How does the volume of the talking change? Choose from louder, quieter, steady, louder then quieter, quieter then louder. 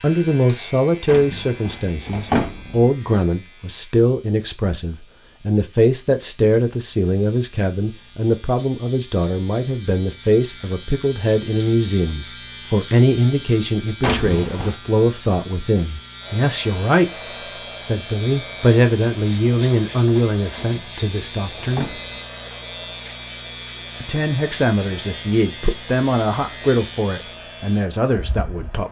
steady.